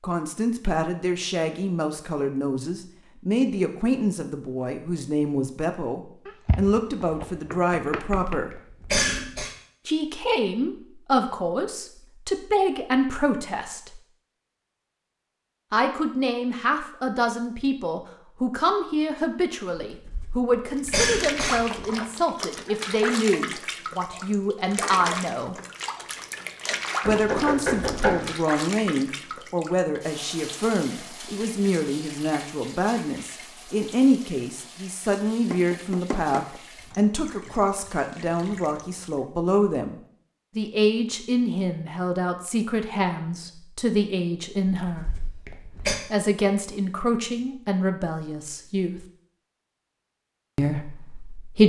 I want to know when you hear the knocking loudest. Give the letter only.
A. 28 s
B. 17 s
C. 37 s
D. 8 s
A.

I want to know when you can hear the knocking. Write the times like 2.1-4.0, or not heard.
6.2-8.4, 27.0-28.4, 35.5-36.6.